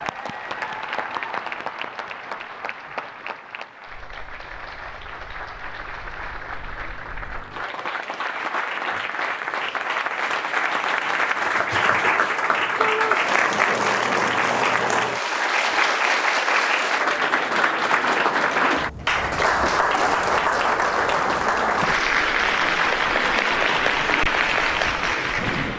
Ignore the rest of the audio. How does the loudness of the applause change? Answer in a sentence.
The loudness of the applause goes up.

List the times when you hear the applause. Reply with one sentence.
You can hear the applause from 0.0 to 25.7 s.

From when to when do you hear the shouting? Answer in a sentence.
The shouting can be heard from 12.8 to 13.2 s.